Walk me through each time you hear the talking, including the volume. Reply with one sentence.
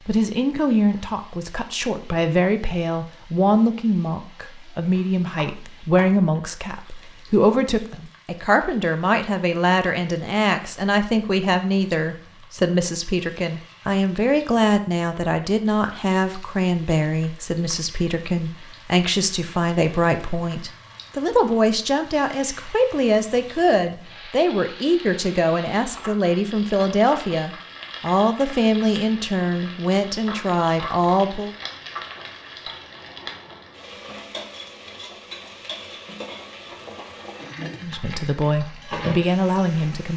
You can hear the talking from 0.1 to 31.5 s, at a steady volume; and briefly from 37.8 to 40.1 s.